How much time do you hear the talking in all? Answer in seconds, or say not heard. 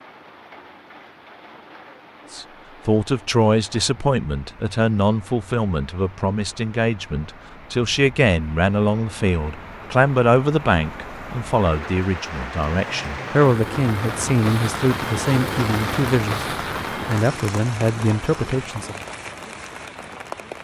16 s.